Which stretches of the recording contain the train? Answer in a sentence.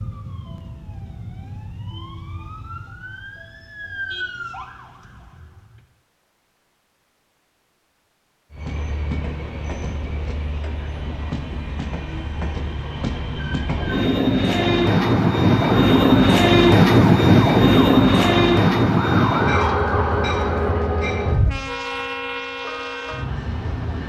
The train can be heard from 8.5 to 24.0 s.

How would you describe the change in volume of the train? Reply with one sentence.
The loudness of the train goes up, then down.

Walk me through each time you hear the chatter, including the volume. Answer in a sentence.
You can't hear the chatter here.